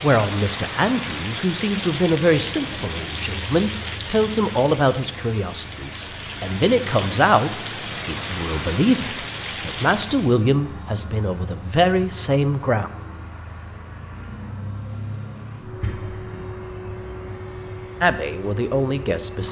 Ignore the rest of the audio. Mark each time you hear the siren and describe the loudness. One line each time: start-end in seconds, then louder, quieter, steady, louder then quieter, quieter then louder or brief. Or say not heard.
not heard.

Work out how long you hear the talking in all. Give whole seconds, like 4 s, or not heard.
14 s.